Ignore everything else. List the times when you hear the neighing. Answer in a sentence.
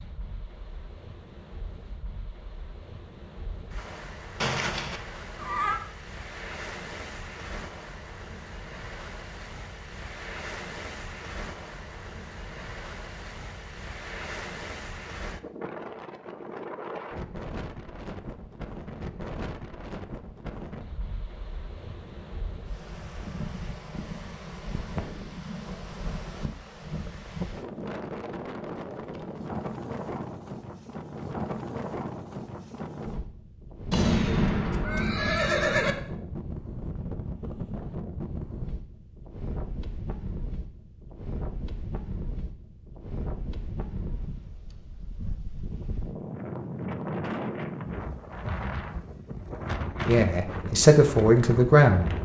The neighing can be heard from 4.4 to 5.8 s and from 33.9 to 36.0 s.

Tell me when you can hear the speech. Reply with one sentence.
The speech can be heard from 50.0 to 52.1 s.